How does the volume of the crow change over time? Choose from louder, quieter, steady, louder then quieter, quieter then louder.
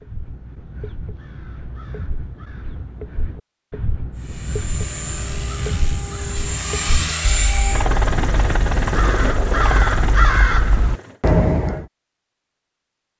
louder.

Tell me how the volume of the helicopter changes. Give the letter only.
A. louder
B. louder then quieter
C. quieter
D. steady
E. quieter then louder
A.